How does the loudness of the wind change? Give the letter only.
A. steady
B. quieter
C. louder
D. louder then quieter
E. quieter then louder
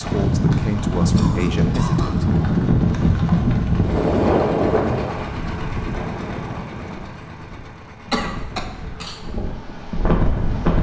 E.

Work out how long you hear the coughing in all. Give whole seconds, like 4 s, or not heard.
2 s.